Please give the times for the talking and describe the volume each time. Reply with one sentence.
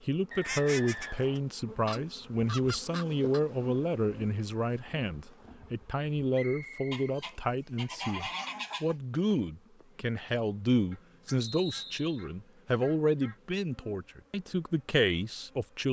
You can hear the talking from 0.0 to 15.8 s, at a steady volume.